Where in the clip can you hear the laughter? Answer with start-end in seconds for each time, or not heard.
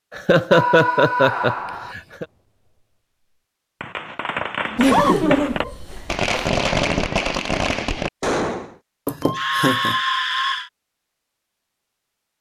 0.1-2.2, 4.8-6.3, 9.1-9.9.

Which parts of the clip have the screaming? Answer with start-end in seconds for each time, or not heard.
0.5-1.9, 4.7-5.2, 9.2-10.7.